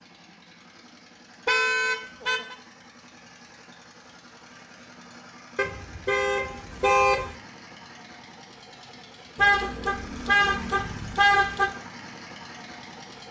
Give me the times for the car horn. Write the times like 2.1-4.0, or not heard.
1.4-2.5, 5.5-7.3, 9.3-11.8.